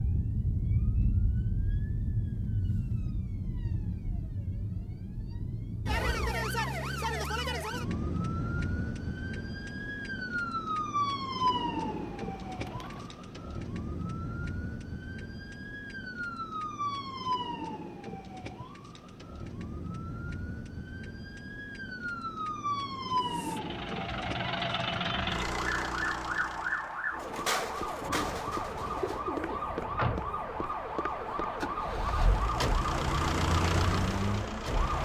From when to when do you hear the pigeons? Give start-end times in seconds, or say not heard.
11.4-13.2, 28.0-30.0.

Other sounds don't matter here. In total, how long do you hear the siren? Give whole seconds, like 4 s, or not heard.
35 s.